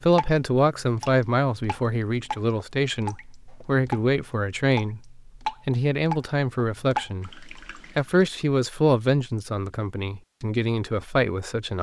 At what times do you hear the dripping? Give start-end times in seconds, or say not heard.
0.0-8.0.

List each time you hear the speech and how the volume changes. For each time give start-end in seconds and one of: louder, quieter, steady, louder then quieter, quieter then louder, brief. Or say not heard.
0.0-11.7 steady.